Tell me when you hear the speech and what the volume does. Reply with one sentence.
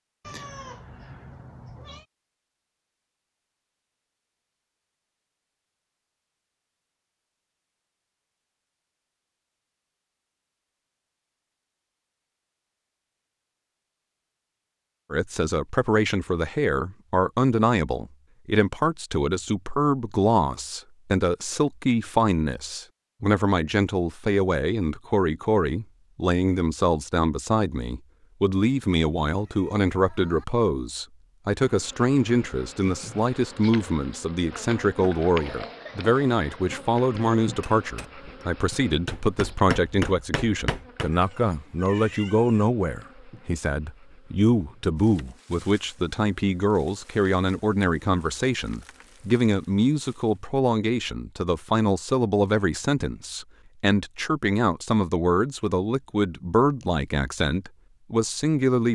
The speech can be heard from 15.1 to 58.9 s, at a steady volume.